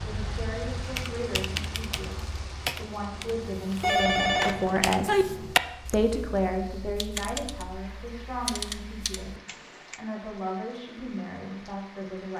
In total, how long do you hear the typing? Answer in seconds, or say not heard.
9 s.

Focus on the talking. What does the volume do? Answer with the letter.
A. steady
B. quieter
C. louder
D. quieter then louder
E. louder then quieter
E.